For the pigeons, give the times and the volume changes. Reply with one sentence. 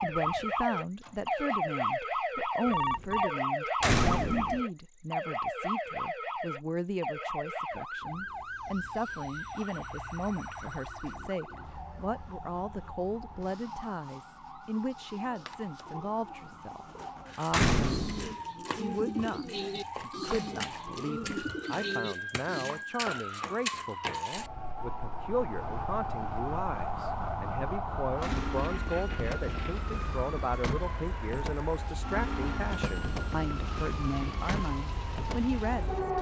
You can hear the pigeons from 15.1 to 22.9 s, getting louder.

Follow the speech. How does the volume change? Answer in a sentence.
The volume of the speech stays about the same.